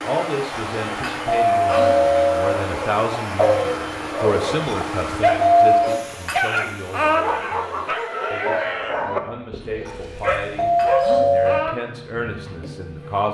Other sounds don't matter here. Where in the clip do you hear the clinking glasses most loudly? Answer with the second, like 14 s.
7 s.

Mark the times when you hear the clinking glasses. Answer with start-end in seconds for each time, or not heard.
0.8-1.8, 6.1-7.2, 10.6-11.8.